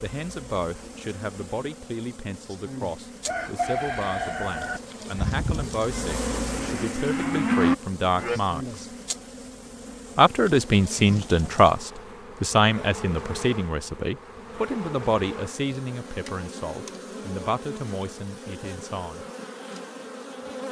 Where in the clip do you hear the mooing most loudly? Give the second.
8 s.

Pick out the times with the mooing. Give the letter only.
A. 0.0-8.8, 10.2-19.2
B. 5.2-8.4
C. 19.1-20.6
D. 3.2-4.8
B.